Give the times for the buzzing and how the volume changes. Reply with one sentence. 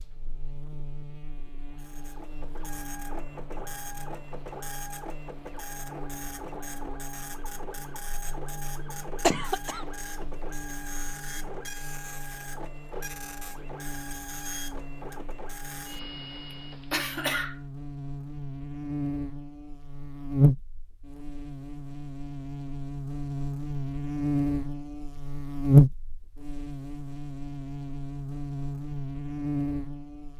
The buzzing can be heard from 0.0 to 30.3 s, getting louder.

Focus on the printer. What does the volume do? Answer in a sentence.
The loudness of the printer stays about the same.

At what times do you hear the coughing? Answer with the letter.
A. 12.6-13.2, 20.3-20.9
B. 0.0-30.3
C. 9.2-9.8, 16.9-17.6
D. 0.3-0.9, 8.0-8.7
C.